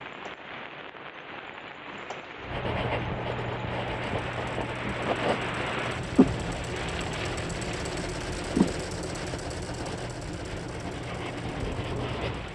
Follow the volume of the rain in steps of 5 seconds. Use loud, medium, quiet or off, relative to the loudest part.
loud, loud, medium.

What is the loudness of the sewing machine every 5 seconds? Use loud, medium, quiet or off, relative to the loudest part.
medium, loud, loud.